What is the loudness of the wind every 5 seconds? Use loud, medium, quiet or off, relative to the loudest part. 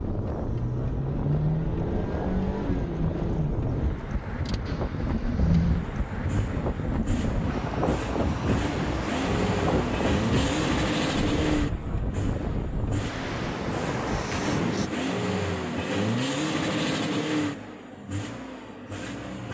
loud, loud, loud, off.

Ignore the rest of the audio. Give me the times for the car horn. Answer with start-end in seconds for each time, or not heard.
not heard.